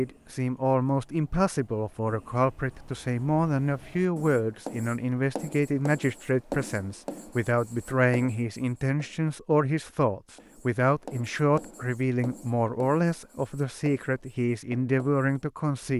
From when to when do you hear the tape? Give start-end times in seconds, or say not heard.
not heard.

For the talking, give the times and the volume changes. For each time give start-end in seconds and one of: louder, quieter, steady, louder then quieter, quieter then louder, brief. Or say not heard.
0.0-15.9 steady.